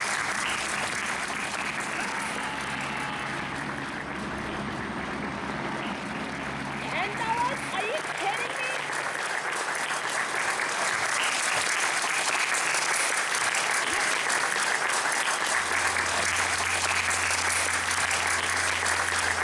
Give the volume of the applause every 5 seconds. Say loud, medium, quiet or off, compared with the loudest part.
medium, medium, loud, loud.